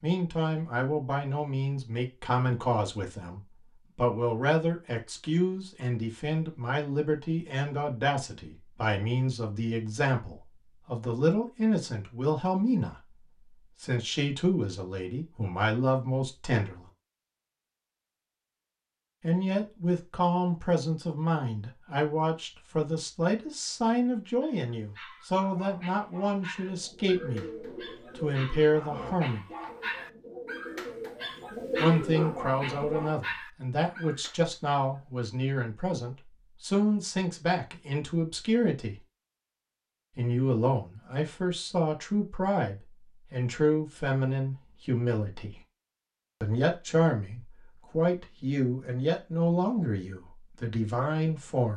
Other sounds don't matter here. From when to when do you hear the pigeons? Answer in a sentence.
You can hear the pigeons from 26.6 to 33.1 s.